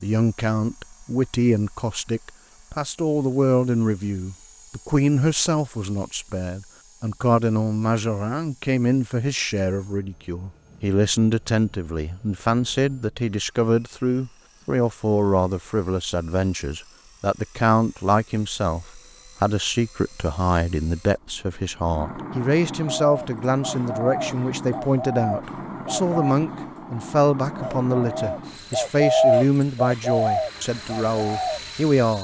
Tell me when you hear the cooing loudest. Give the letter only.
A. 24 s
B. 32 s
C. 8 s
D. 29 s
D.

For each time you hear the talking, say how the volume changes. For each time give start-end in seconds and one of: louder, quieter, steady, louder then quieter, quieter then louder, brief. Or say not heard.
0.0-32.1 steady.